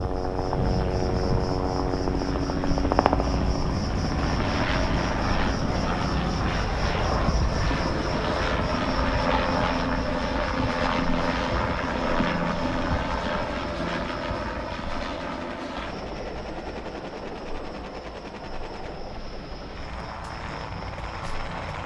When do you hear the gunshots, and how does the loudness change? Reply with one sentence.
The gunshots can be heard from 14.9 to 19.0 s, at a steady volume.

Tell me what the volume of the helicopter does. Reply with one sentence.
The loudness of the helicopter goes down.